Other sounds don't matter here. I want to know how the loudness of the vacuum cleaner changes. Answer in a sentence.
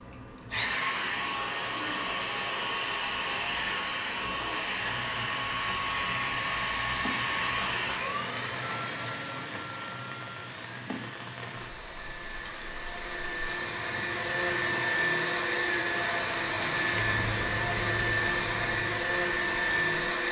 The volume of the vacuum cleaner goes down, then up.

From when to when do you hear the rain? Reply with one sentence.
You can hear the rain from 4.8 to 20.1 s.